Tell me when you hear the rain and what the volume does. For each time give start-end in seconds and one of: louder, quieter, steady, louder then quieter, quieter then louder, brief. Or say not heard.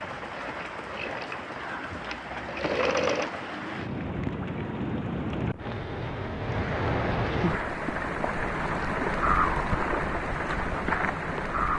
0.0-11.7 louder.